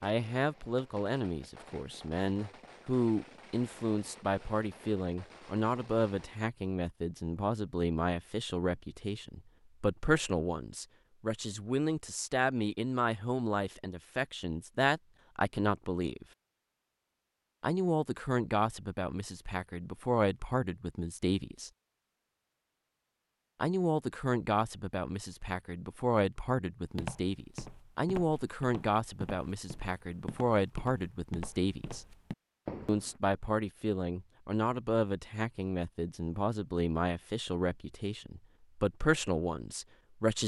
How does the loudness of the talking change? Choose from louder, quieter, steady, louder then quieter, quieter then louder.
steady.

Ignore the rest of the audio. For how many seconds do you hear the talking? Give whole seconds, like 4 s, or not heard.
36 s.